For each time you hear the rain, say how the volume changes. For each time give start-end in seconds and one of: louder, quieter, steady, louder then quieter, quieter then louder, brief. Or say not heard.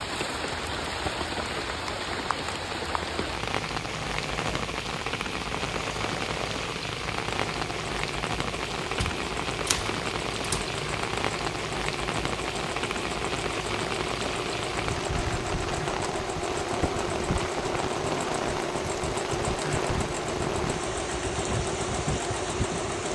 0.0-23.0 steady.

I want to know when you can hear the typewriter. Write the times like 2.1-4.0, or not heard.
8.9-10.7.